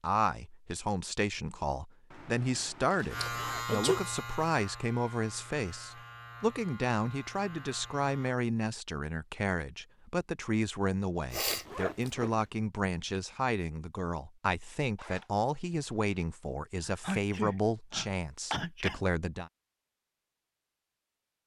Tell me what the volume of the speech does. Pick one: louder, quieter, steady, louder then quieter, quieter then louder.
steady.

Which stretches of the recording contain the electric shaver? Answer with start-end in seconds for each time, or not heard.
3.1-8.4.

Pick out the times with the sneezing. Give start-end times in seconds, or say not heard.
3.2-4.0, 11.3-12.2, 16.9-19.0.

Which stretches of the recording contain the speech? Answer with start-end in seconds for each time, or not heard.
0.0-19.5.